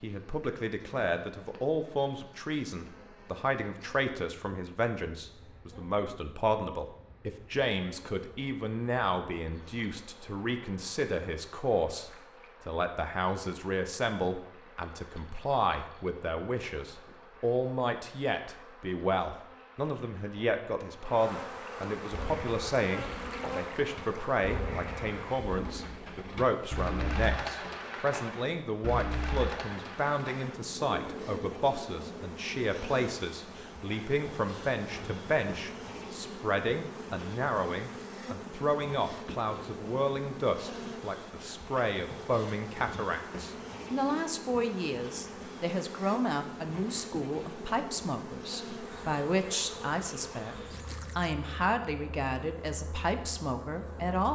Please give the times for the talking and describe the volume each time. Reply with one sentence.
The talking can be heard from 0.0 to 54.2 s, at a steady volume.